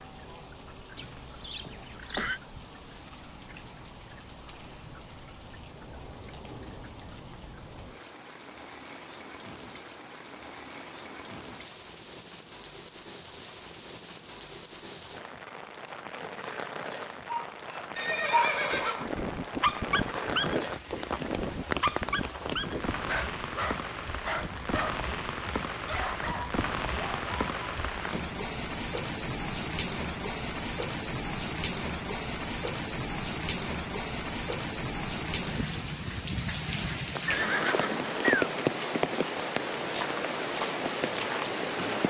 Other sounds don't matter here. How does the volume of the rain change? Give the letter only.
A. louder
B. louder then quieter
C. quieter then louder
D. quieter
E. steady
A.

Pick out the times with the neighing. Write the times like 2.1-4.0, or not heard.
0.9-2.4, 17.9-19.1, 37.2-38.2.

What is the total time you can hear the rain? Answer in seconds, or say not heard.
42 s.